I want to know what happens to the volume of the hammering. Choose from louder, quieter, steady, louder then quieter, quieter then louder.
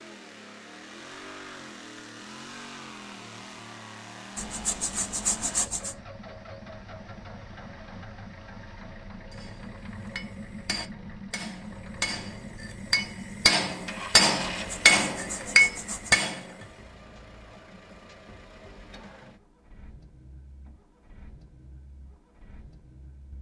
louder.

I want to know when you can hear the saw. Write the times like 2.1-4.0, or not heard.
4.3-6.0, 14.6-16.1.